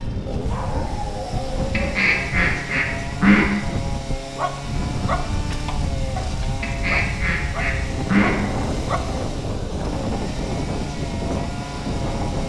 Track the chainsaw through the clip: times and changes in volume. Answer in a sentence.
You can hear the chainsaw from 0.0 to 12.4 s, at a steady volume.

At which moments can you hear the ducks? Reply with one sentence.
You can hear the ducks from 1.7 to 3.5 s and from 6.6 to 8.4 s.